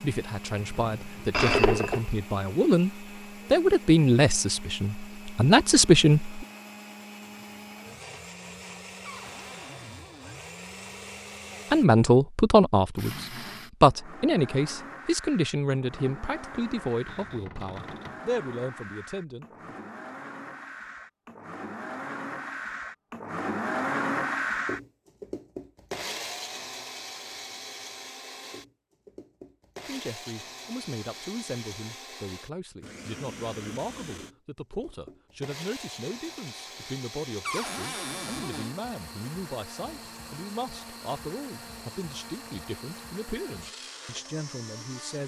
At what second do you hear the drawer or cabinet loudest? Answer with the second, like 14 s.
38 s.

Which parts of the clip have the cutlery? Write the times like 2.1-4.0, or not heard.
not heard.